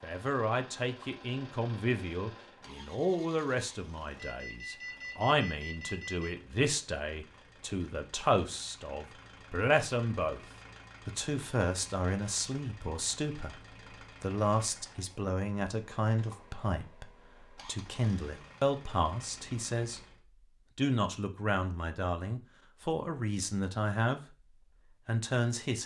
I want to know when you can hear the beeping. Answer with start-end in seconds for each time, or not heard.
4.2-6.3.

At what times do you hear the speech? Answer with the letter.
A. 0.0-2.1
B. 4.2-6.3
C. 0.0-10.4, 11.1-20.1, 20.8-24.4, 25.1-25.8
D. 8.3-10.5
C.